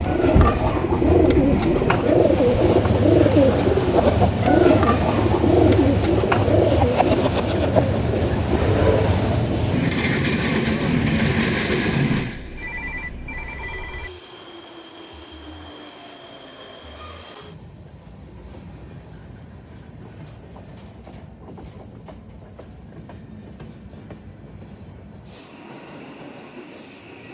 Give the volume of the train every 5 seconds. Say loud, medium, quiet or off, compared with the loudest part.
loud, loud, loud, quiet, quiet, quiet.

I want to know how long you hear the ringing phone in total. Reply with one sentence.
The ringing phone can be heard for 2 seconds in total.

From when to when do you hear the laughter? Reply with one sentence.
You can't hear the laughter here.